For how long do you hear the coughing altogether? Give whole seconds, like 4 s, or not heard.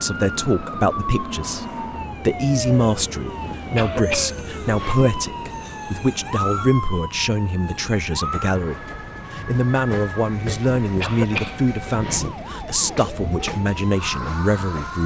3 s.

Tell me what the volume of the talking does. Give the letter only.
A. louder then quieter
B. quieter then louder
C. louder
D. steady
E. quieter
D.